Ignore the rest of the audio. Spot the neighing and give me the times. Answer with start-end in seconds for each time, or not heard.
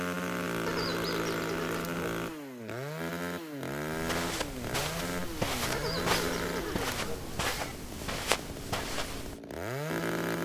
0.7-2.2, 5.7-7.5.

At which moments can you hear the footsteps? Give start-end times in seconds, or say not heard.
3.9-9.4.